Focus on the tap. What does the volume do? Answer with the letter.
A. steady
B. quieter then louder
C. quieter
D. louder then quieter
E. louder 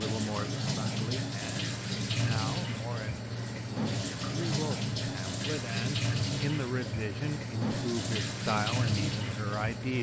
A.